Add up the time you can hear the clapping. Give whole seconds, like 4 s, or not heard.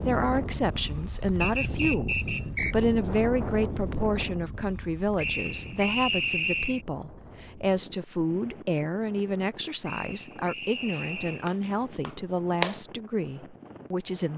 2 s.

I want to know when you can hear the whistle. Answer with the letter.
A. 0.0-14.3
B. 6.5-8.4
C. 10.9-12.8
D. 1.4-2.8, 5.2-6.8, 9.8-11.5
D.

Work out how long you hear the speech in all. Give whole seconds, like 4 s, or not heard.
14 s.